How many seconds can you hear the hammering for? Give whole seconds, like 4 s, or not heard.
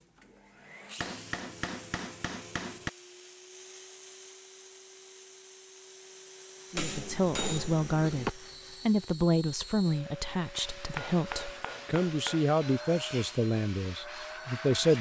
5 s.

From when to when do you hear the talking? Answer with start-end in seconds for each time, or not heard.
6.7-14.9.